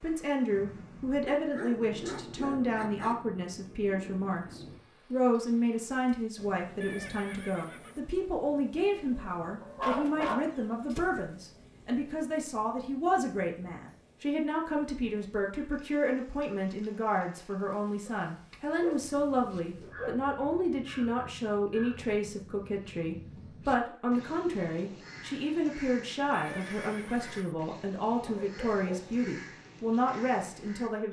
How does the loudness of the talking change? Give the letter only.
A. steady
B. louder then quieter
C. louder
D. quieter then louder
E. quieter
A.